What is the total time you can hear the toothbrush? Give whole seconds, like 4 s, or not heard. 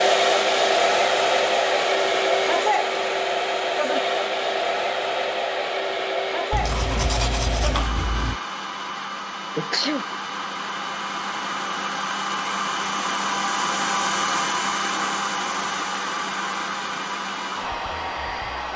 2 s.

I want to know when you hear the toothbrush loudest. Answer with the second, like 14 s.
7 s.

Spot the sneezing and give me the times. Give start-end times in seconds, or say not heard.
9.6-10.1.